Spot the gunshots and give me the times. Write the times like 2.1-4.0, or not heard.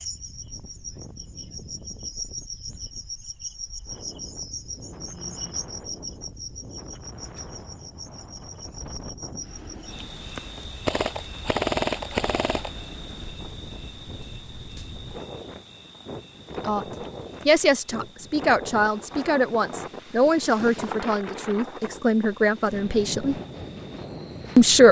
10.8-12.8.